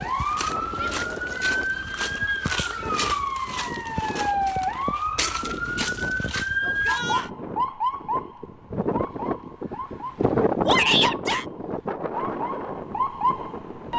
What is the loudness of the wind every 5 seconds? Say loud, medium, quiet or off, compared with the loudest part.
medium, medium, loud.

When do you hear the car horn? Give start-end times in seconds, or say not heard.
not heard.